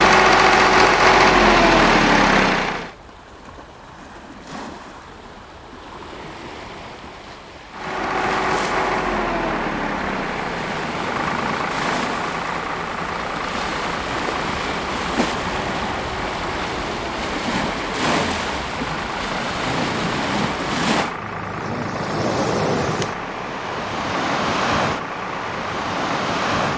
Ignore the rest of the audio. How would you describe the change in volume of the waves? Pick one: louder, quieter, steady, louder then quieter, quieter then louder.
louder.